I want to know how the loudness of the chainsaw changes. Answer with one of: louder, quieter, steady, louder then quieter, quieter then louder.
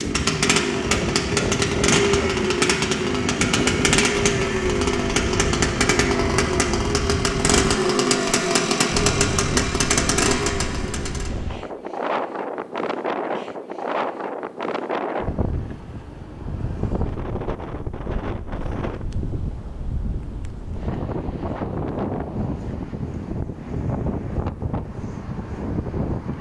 steady.